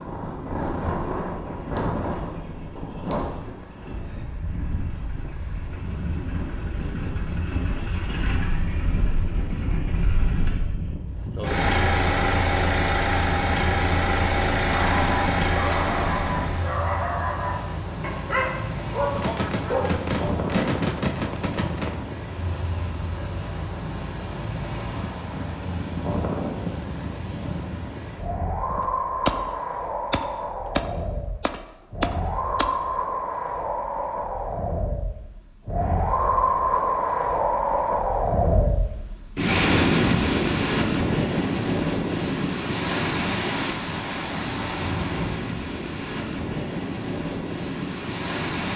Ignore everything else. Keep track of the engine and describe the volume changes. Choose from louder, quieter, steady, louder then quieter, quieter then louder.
louder.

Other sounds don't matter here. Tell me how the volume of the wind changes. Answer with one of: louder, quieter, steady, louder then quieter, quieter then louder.
louder.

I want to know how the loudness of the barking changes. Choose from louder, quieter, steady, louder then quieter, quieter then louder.
steady.